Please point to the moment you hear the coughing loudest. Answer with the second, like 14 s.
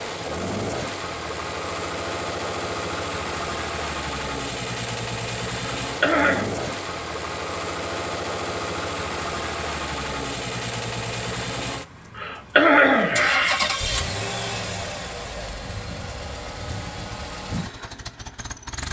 13 s.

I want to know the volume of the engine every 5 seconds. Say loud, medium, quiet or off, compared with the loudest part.
loud, loud, loud, medium.